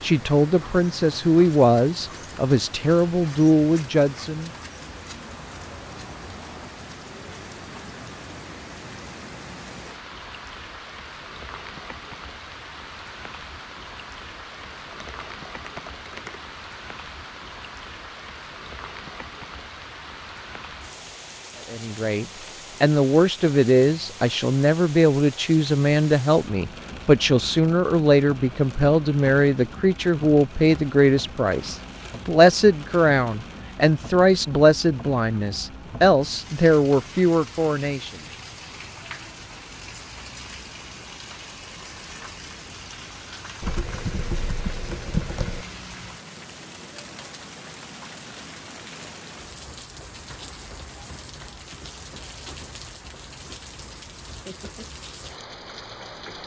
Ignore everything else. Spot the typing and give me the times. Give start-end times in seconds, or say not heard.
14.6-16.4, 43.6-45.6.